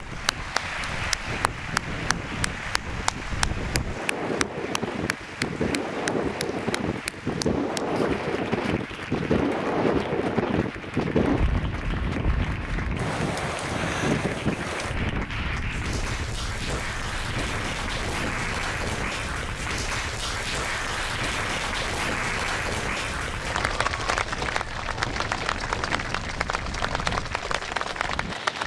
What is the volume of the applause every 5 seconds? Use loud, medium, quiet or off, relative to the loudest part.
loud, medium, medium, loud, loud, loud.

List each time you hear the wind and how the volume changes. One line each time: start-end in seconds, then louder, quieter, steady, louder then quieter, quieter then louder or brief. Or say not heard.
0.0-28.6 louder then quieter.